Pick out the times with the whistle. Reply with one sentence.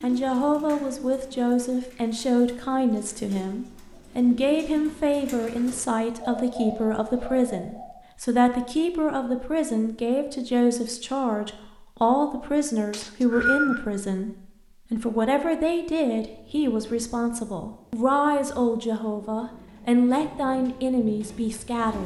You can hear the whistle from 12.9 to 13.8 s.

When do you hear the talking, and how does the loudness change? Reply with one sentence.
You can hear the talking from 0.0 to 22.0 s, at a steady volume.